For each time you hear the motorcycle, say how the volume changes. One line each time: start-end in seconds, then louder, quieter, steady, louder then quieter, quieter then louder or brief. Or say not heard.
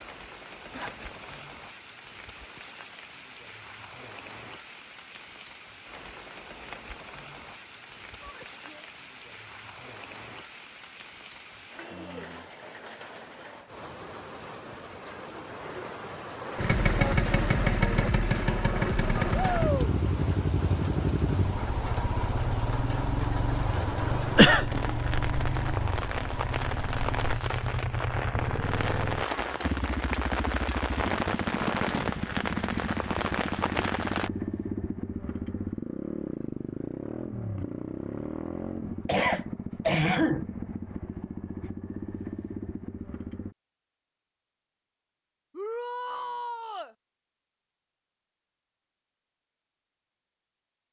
16.6-43.5 quieter.